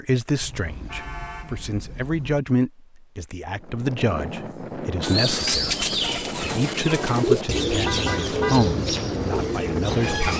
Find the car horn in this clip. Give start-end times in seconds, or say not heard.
0.4-2.4, 7.7-8.7.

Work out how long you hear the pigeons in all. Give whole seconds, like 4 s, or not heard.
5 s.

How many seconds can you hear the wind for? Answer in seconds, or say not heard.
7 s.